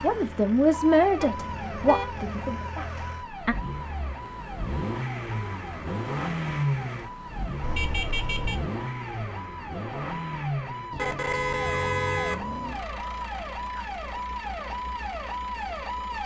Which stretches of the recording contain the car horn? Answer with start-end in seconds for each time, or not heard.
1.2-2.7, 7.6-8.7, 10.9-12.8.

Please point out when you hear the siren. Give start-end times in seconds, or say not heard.
0.0-16.2.